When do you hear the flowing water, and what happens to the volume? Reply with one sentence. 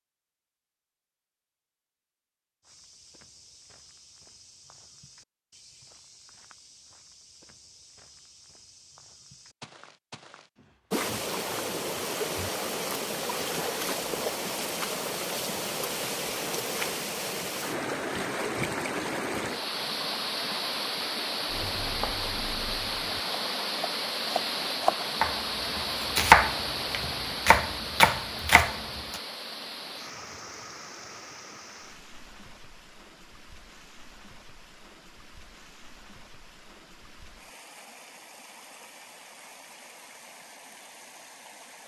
The flowing water can be heard from 10.9 to 41.8 s, getting quieter.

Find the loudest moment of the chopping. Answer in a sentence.
The loudest moment of the chopping is at 26 seconds.